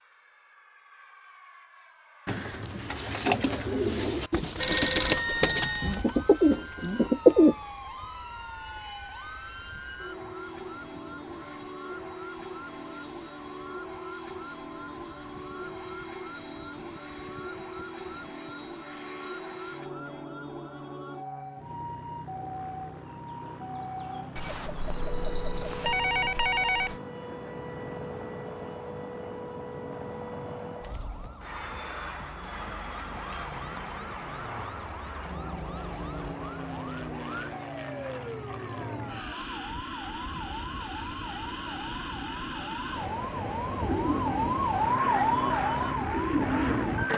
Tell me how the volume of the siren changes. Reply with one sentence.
The loudness of the siren goes up.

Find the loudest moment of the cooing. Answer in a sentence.
The volume of the cooing peaks at 7 seconds.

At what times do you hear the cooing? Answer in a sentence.
You can hear the cooing from 2.2 to 7.5 s and from 43.8 to 47.1 s.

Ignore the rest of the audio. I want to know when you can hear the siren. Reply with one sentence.
The siren can be heard from 5.2 to 47.1 s.